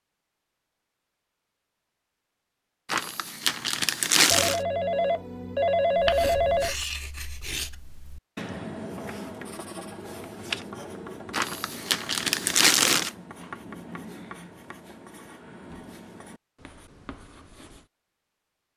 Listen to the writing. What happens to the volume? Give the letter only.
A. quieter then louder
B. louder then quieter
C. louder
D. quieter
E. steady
D.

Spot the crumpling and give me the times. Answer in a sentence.
You can hear the crumpling from 2.9 to 4.6 s and from 11.3 to 13.1 s.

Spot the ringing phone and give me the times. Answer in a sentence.
The ringing phone can be heard from 4.3 to 6.8 s.